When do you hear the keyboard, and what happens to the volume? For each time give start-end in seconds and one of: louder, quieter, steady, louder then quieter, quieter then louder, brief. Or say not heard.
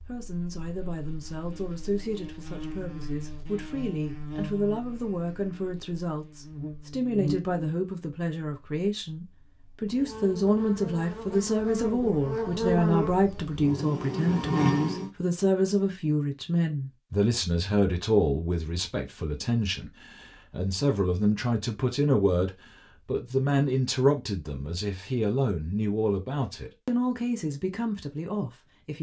not heard.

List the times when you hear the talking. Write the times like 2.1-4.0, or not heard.
0.1-28.9.